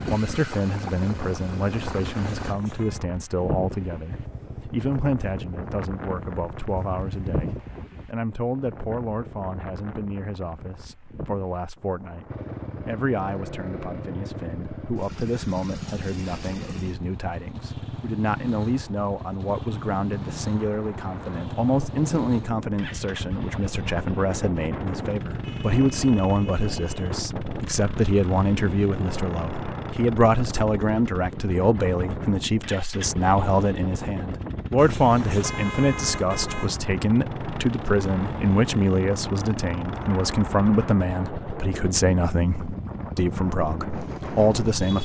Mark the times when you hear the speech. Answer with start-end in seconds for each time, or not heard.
0.1-44.9.